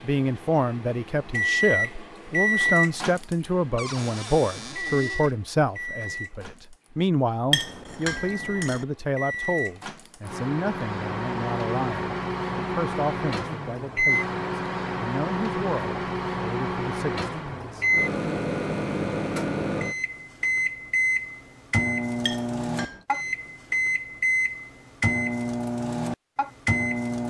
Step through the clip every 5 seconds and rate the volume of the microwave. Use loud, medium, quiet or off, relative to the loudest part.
loud, medium, loud, loud, loud, loud.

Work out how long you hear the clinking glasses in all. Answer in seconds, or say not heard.
2 s.